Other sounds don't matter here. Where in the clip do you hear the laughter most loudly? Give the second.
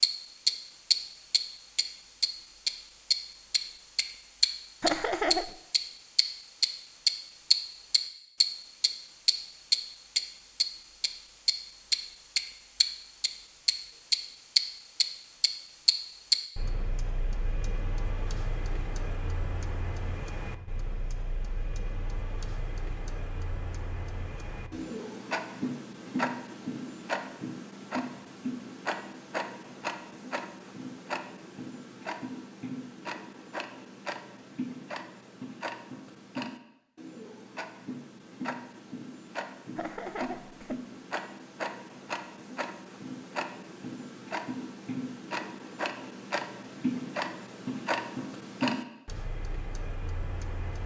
5 s.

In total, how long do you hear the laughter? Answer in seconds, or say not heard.
2 s.